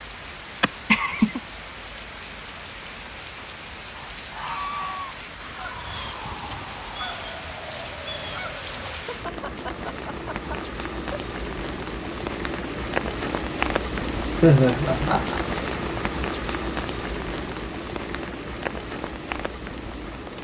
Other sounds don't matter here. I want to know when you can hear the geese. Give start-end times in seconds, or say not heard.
3.9-9.2.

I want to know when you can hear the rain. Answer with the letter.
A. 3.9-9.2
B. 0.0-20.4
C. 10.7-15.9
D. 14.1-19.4
B.